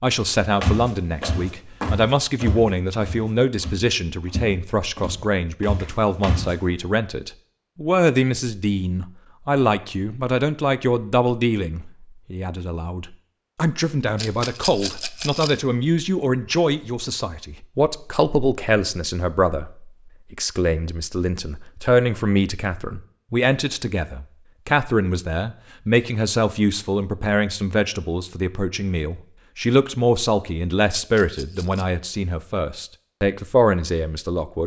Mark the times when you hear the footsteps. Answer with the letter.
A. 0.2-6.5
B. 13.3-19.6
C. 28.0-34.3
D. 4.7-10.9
A.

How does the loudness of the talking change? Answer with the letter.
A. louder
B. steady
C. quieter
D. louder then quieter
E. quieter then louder
B.